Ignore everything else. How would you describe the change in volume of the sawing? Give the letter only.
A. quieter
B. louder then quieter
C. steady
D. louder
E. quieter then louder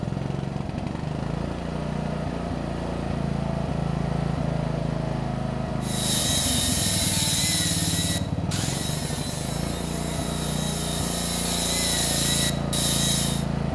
E.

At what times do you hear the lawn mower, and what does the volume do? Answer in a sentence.
You can hear the lawn mower from 0.0 to 13.7 s, at a steady volume.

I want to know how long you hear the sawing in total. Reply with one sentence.
The sawing can be heard for 8 seconds in total.